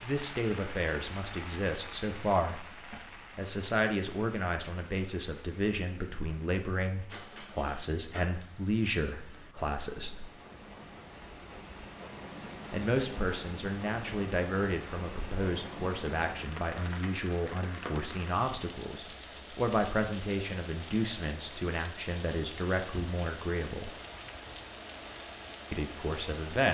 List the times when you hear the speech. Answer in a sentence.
The speech can be heard from 0.0 to 10.3 s, from 12.7 to 23.9 s and from 25.7 to 26.7 s.